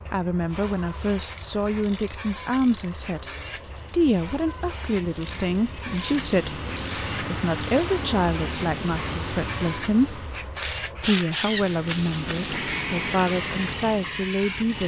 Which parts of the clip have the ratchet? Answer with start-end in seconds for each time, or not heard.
1.4-3.4, 5.0-7.8, 10.3-12.8.